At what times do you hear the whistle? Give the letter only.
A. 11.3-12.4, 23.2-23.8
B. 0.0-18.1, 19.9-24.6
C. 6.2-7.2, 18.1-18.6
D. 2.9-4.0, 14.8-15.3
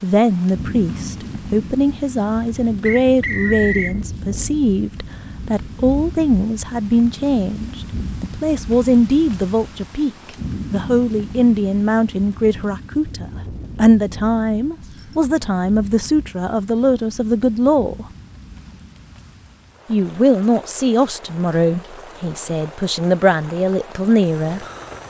D.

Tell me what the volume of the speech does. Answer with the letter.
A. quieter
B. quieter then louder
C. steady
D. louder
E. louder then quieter
C.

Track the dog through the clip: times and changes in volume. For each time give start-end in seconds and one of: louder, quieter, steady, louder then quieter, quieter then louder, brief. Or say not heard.
not heard.